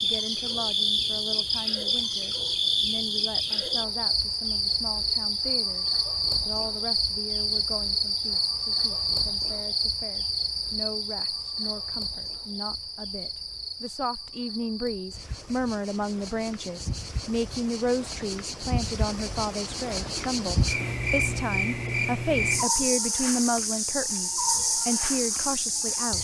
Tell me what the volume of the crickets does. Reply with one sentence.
The volume of the crickets goes down, then up.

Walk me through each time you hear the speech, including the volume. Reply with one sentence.
You can hear the speech from 0.0 to 26.1 s, getting louder.